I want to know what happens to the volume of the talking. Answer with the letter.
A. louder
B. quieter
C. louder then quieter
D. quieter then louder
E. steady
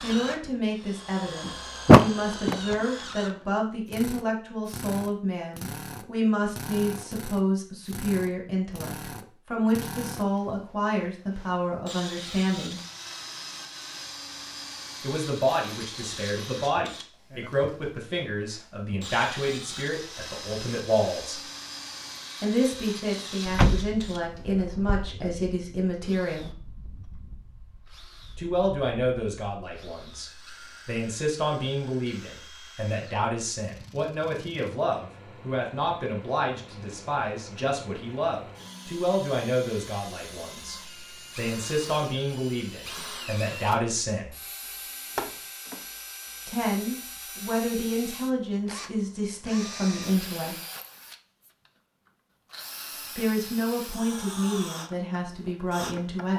E.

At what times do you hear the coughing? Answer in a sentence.
The coughing can't be heard in this clip.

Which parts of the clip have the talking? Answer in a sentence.
The talking can be heard from 0.0 to 12.8 s, from 15.0 to 21.4 s, from 22.4 to 26.5 s, from 28.4 to 44.4 s, from 46.5 to 50.5 s and from 53.1 to 56.3 s.